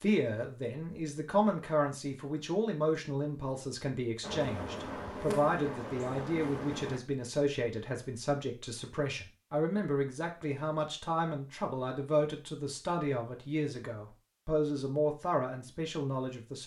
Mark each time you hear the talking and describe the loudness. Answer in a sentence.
The talking can be heard from 0.0 to 16.6 s, at a steady volume.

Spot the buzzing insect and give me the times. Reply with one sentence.
You can hear the buzzing insect from 4.2 to 7.0 s.